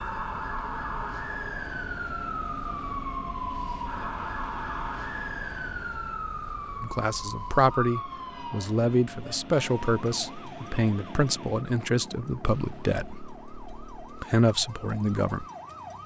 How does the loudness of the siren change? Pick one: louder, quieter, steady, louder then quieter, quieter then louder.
quieter.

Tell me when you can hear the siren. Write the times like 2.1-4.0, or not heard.
0.0-16.0.